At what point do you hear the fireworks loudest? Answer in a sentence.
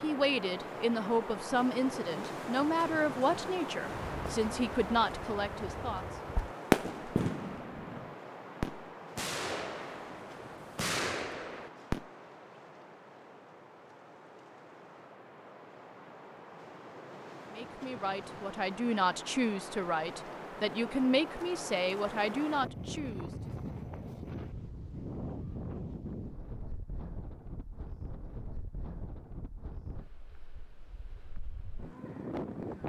The volume of the fireworks peaks at 7 seconds.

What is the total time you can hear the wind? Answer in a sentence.
You can hear the wind for 33 seconds altogether.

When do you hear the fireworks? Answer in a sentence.
The fireworks can be heard from 3.9 to 12.1 s.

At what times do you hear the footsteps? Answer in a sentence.
The footsteps can't be heard in this clip.